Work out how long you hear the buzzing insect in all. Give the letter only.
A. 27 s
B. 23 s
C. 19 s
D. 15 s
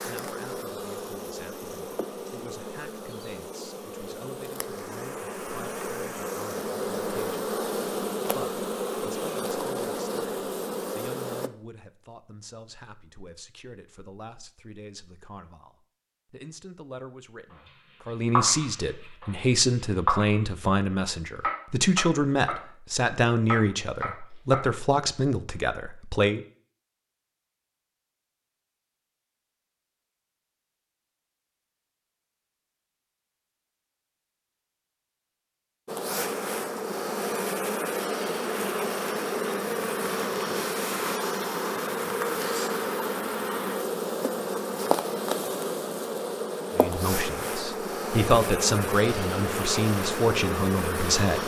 A.